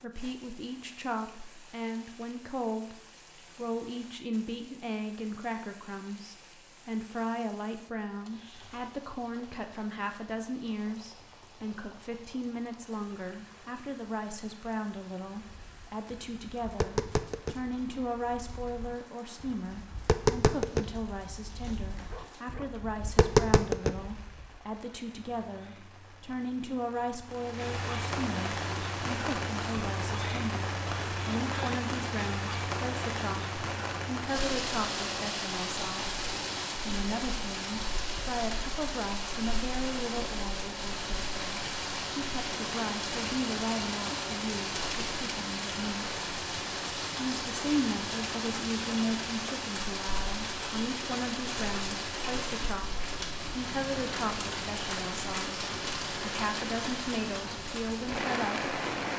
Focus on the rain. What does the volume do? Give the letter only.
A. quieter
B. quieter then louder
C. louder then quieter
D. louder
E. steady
D.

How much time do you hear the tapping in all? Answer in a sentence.
The tapping can be heard for 9 seconds in total.